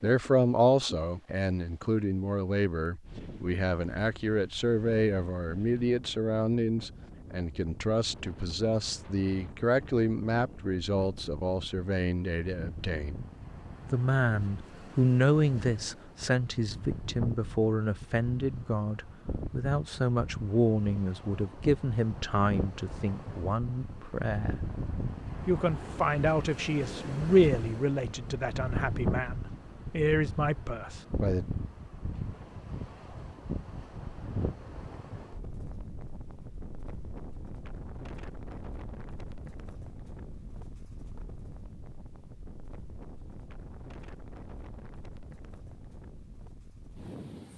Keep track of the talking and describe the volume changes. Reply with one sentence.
The volume of the talking stays about the same.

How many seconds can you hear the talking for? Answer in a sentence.
You can hear the talking for 30 seconds altogether.